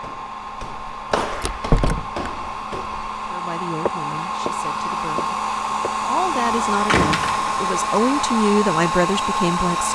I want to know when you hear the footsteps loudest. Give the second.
1 s.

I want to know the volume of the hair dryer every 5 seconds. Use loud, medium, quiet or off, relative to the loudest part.
medium, loud.